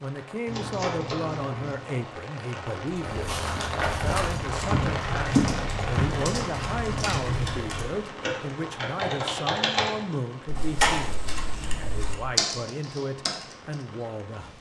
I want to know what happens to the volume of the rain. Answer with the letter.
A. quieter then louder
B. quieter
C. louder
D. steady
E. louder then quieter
E.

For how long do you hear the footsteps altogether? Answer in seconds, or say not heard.
3 s.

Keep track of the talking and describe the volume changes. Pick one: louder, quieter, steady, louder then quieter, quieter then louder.
steady.